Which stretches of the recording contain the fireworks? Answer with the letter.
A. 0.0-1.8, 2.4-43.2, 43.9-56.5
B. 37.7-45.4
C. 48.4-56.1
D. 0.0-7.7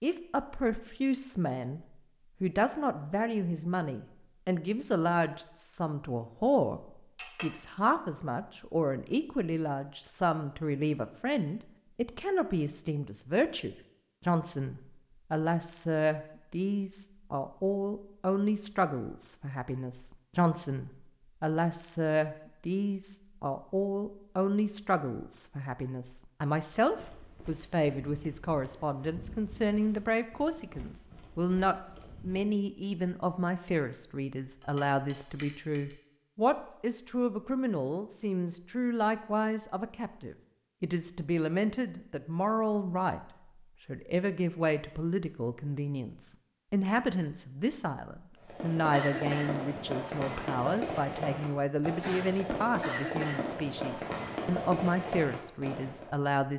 C.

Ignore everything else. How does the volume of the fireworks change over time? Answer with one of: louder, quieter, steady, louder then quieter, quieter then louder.
steady.